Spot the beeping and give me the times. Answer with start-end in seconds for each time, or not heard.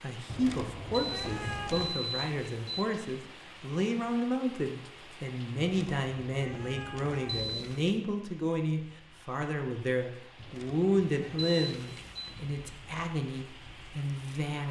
0.9-2.9, 7.2-8.0, 11.3-12.3.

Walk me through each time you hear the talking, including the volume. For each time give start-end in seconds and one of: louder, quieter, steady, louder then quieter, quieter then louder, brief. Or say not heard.
0.0-14.6 steady.